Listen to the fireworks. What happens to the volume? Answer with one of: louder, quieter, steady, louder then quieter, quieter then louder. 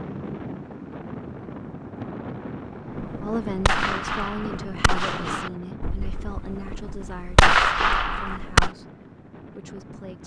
quieter then louder.